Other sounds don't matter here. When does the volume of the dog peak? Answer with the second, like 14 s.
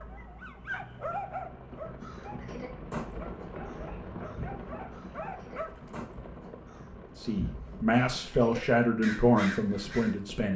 1 s.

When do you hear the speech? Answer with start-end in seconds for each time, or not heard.
7.2-10.5.